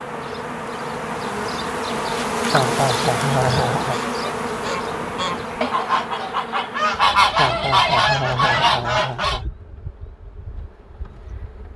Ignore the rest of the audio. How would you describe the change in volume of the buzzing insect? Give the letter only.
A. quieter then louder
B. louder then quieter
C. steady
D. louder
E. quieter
E.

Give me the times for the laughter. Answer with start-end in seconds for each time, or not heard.
2.5-4.0, 7.3-9.5.